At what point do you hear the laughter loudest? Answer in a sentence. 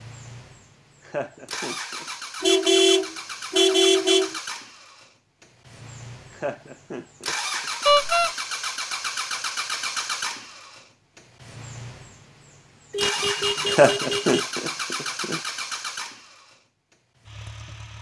The volume of the laughter peaks at 14 seconds.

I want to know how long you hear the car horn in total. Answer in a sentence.
The car horn can be heard for 4 seconds in total.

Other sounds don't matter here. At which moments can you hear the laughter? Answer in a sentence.
The laughter can be heard from 1.1 to 2.0 s, from 6.3 to 7.7 s and from 13.7 to 15.4 s.